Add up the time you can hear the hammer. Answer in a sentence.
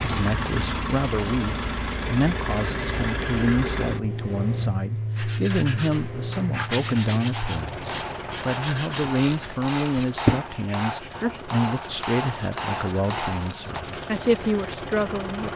You can hear the hammer for 9 seconds altogether.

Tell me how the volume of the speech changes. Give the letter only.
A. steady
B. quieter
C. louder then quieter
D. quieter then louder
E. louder
A.